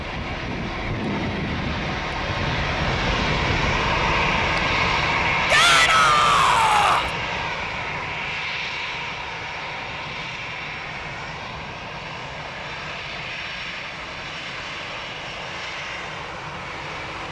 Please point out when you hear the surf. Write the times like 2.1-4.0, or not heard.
not heard.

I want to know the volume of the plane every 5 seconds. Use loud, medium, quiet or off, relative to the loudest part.
loud, loud, medium, medium.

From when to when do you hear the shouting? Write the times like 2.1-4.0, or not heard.
5.5-7.1.